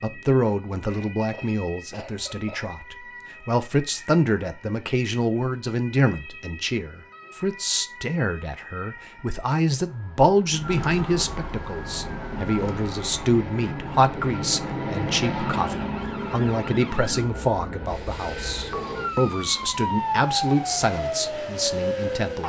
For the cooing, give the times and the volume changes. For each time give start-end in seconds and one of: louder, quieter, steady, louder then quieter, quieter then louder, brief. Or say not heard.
not heard.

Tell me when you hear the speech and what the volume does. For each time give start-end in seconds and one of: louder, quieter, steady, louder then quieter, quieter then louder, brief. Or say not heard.
0.0-22.4 steady.